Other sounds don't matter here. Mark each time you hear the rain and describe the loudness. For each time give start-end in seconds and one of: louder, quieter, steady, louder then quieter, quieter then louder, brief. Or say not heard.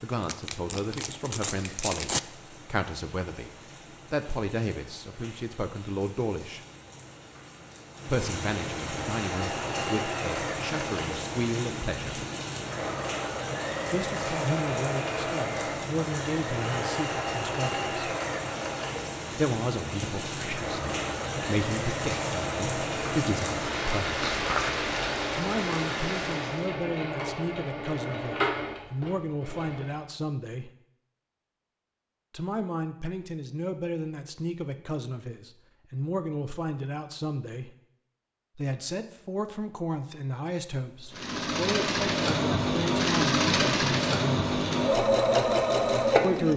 0.0-26.8 louder.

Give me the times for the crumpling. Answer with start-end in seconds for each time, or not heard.
0.2-2.2, 24.2-24.9.